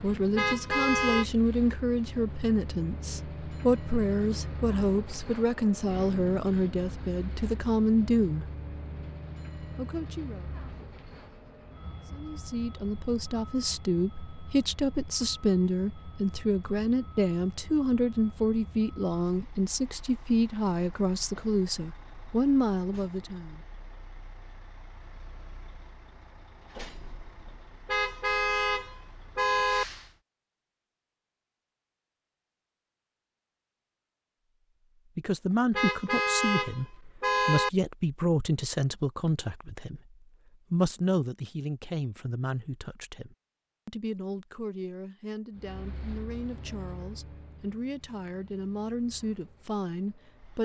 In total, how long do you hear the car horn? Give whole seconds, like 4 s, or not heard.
5 s.